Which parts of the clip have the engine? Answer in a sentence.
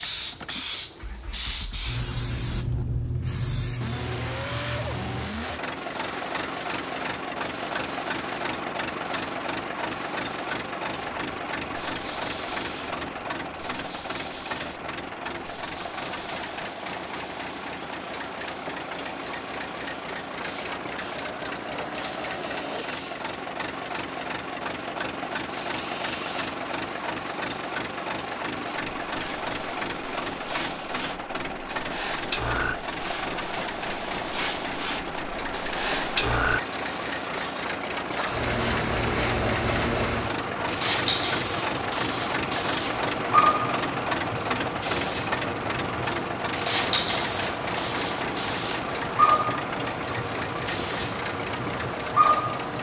You can hear the engine from 0.0 to 52.7 s.